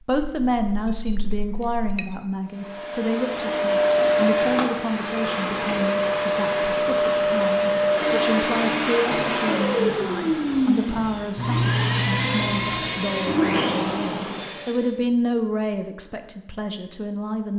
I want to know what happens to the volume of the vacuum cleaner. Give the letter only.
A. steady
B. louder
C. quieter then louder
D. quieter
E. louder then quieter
A.